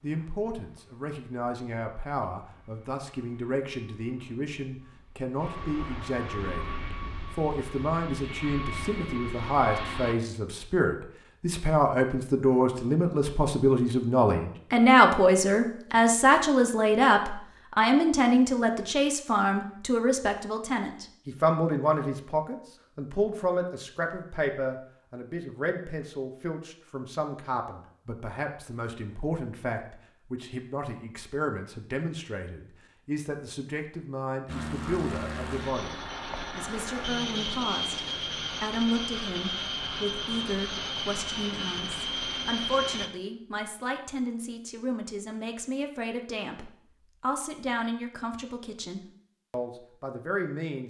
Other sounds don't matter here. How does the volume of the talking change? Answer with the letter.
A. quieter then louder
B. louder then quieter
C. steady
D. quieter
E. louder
B.